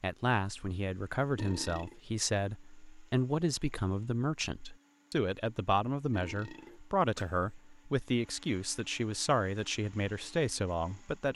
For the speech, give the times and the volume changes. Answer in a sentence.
The speech can be heard from 0.0 to 11.3 s, at a steady volume.